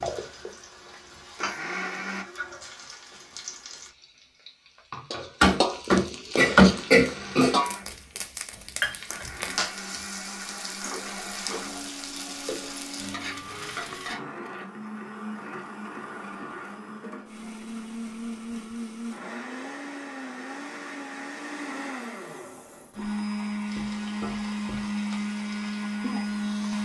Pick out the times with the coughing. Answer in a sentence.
The coughing can be heard from 5.4 to 7.6 s.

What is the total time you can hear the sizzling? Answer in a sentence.
The sizzling can be heard for 17 seconds in total.